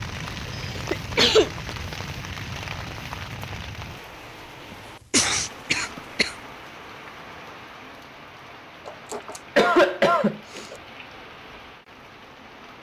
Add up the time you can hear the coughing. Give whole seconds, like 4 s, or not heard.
4 s.